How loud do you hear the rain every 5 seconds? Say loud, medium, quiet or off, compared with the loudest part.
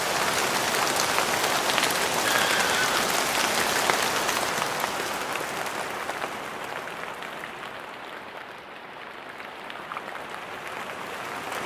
loud, medium, medium.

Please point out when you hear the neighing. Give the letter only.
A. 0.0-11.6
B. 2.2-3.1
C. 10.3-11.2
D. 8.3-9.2
B.